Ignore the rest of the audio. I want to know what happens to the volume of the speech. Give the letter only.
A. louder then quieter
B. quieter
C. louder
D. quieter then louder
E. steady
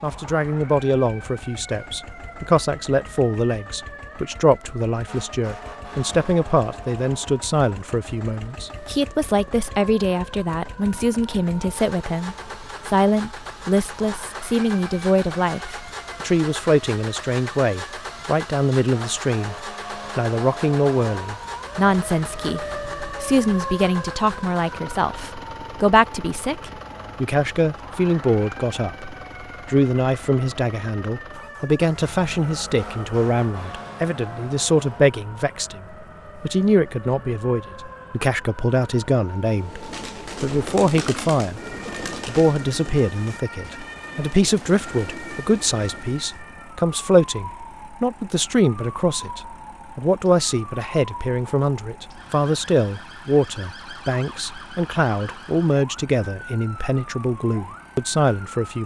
E.